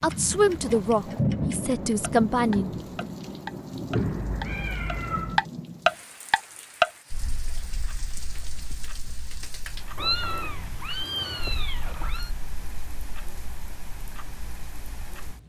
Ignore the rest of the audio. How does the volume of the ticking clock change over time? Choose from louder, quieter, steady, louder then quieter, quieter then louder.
louder then quieter.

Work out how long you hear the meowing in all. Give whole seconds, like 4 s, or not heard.
4 s.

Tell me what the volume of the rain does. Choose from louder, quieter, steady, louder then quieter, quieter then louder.
quieter.